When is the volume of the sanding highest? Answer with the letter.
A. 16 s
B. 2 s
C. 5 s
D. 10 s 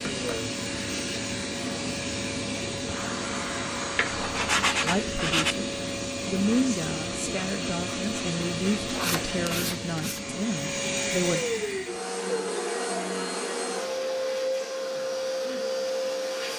C.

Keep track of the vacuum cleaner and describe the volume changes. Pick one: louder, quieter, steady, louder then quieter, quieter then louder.
steady.